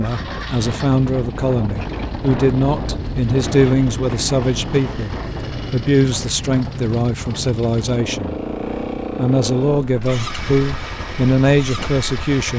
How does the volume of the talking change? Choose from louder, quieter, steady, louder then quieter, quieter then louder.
steady.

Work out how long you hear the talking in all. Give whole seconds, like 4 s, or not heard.
12 s.